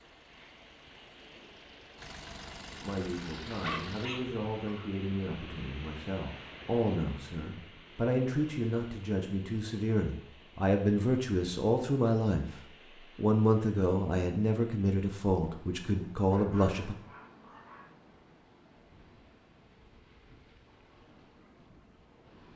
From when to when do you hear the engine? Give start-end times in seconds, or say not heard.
0.0-4.1.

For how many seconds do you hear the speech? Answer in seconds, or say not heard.
14 s.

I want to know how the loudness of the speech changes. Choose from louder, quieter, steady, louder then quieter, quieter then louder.
louder.